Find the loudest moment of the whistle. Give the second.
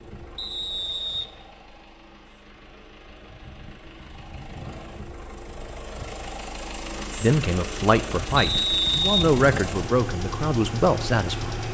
9 s.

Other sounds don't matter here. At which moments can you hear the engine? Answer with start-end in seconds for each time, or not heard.
0.0-11.6.